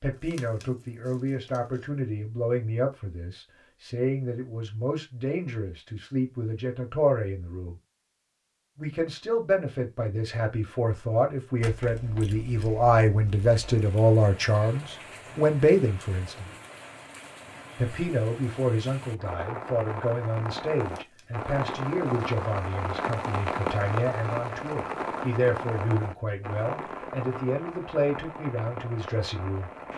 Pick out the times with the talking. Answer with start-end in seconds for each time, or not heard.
0.0-7.8, 8.8-16.5, 17.8-29.7.